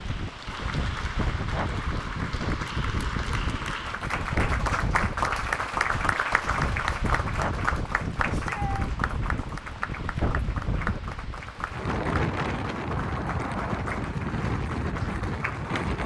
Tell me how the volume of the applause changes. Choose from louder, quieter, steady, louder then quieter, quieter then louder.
louder then quieter.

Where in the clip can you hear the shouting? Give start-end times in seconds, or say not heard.
8.2-8.9.